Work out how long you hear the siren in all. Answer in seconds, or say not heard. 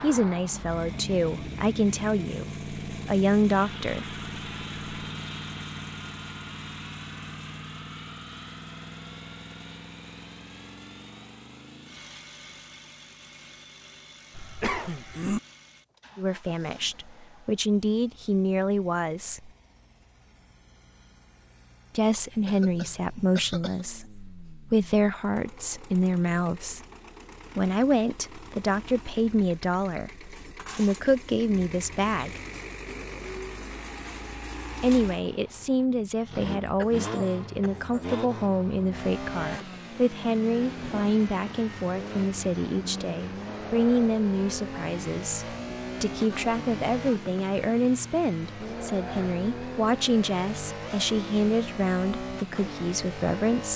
not heard.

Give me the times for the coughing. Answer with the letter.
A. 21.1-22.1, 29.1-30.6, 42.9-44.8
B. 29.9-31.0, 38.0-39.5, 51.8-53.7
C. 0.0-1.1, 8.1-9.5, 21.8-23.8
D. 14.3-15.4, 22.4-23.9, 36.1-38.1
D.